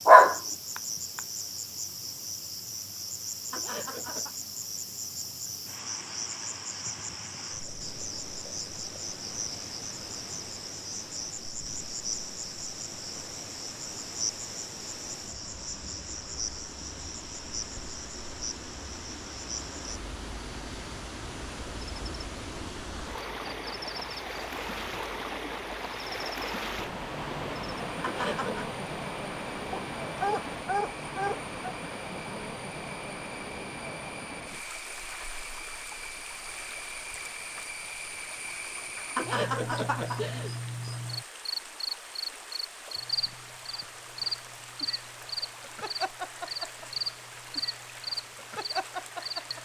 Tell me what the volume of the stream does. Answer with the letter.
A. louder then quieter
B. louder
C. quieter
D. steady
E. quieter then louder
A.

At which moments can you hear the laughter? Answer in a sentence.
The laughter can be heard from 3.5 to 4.3 s, from 28.0 to 28.7 s and from 39.1 to 40.5 s.